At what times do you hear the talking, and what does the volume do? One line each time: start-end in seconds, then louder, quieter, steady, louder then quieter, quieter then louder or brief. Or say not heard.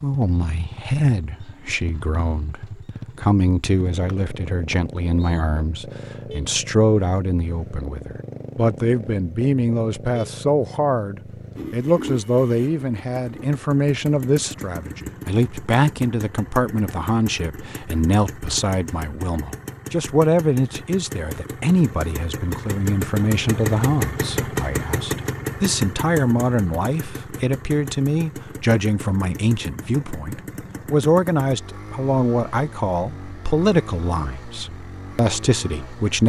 0.0-36.2 steady.